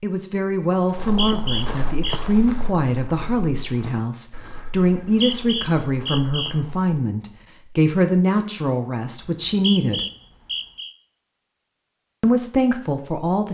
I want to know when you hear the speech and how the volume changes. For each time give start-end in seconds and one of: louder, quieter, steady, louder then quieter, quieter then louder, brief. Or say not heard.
0.0-10.1 steady
12.2-13.4 brief.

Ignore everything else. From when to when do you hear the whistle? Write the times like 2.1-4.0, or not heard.
1.0-2.2, 5.0-6.5, 9.2-10.9.